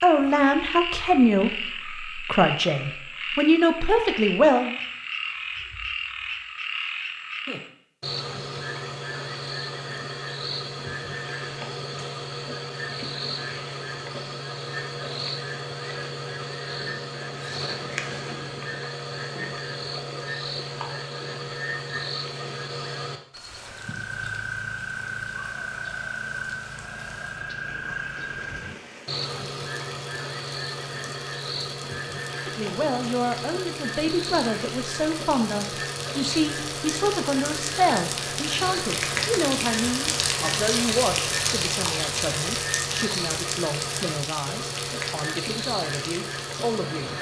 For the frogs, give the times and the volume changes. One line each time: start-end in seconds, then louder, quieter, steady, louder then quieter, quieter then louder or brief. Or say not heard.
0.0-47.1 steady.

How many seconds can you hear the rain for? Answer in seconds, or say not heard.
24 s.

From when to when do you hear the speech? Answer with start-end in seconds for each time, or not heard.
0.0-4.8, 32.4-47.1.